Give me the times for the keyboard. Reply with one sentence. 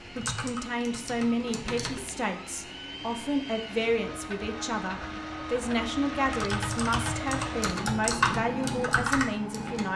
You can hear the keyboard from 0.0 to 2.0 s and from 6.2 to 9.9 s.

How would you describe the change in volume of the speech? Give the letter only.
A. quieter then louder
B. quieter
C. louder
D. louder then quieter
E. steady
E.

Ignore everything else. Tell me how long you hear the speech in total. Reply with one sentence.
The speech can be heard for 10 seconds in total.